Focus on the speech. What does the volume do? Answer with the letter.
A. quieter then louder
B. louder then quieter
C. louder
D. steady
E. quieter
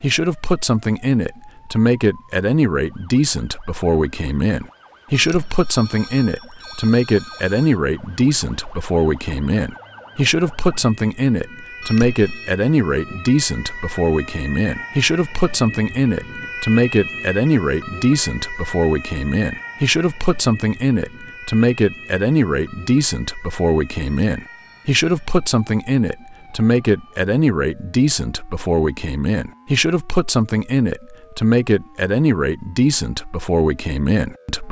D.